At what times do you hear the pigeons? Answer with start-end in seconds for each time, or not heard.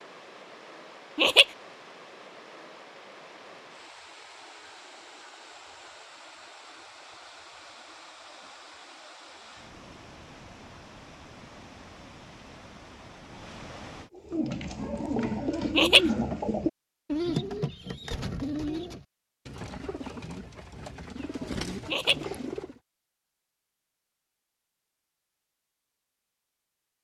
14.2-22.8.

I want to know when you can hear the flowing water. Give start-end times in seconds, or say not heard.
0.0-14.1.